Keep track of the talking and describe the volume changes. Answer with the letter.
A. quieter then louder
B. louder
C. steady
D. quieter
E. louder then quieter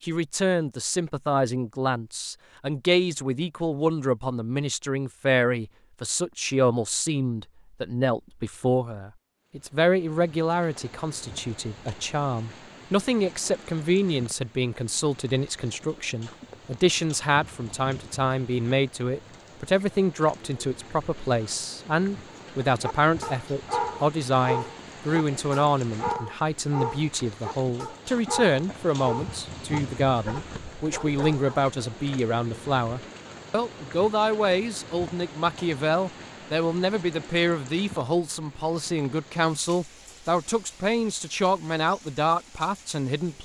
C.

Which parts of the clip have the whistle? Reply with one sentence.
The whistle can't be heard in this clip.